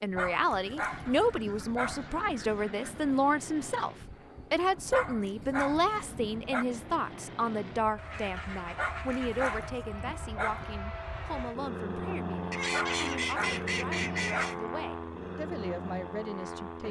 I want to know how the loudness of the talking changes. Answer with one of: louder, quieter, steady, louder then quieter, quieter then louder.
quieter.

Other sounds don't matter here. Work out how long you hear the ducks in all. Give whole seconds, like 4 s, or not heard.
6 s.